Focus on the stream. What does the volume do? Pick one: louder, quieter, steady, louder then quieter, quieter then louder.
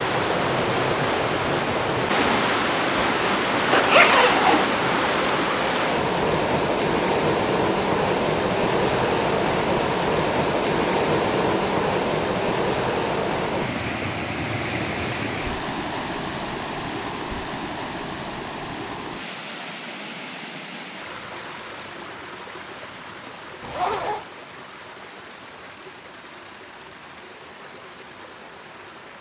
quieter.